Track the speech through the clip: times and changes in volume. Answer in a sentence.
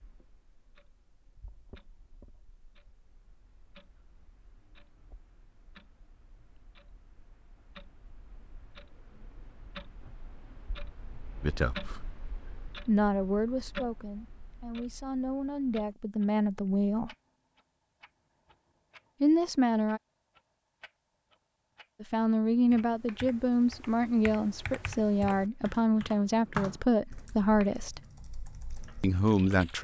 You can hear the speech briefly from 11.4 to 12.1 s; from 12.8 to 17.1 s, getting quieter then louder; briefly from 19.2 to 20.0 s; from 22.0 to 28.0 s, at a steady volume; and briefly from 29.0 to 29.7 s.